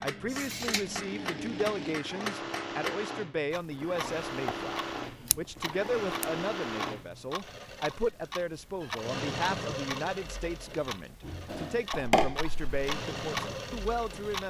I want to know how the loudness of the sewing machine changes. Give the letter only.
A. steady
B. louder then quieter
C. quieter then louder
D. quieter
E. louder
A.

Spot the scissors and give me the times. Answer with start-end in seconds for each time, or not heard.
0.2-0.9, 11.9-12.9.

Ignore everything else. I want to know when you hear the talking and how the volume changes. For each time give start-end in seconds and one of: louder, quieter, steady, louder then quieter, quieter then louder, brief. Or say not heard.
0.0-14.4 steady.